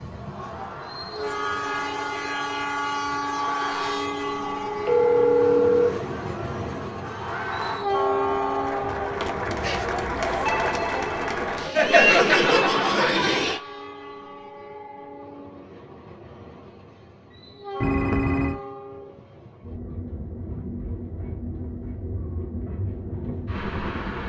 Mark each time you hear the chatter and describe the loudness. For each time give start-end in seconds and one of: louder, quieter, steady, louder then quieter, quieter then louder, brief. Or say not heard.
0.0-13.6 louder.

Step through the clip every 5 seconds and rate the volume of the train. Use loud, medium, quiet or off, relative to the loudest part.
loud, loud, medium, medium, medium.